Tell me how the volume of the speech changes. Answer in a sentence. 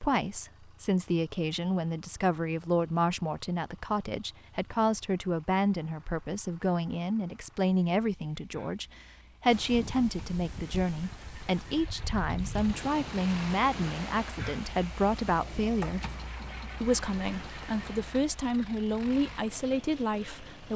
The volume of the speech stays about the same.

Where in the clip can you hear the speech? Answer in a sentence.
You can hear the speech from 0.0 to 16.0 s and from 16.8 to 20.7 s.